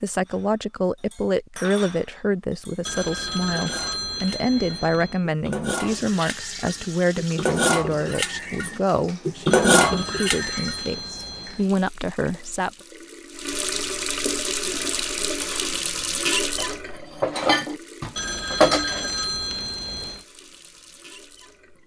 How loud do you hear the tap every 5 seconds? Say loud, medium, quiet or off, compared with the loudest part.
off, medium, loud, loud, quiet.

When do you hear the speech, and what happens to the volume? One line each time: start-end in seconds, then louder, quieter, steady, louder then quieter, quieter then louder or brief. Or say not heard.
0.0-12.7 steady.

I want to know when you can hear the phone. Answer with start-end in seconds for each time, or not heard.
2.9-5.2, 9.5-11.7, 18.1-20.2.